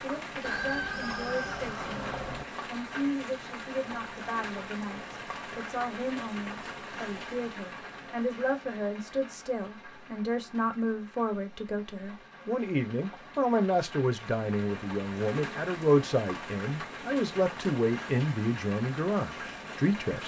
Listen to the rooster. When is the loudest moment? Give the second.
1 s.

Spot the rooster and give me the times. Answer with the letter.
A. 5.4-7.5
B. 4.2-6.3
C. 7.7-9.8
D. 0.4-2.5
D.